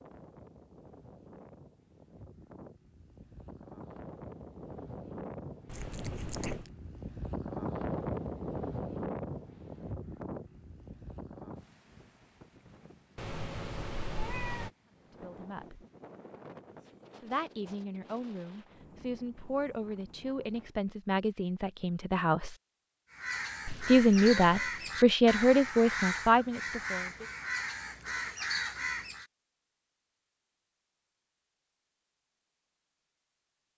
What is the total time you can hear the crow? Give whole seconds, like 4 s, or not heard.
6 s.